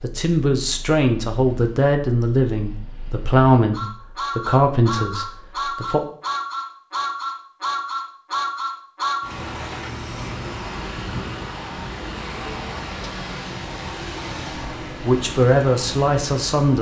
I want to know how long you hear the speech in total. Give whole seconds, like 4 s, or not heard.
8 s.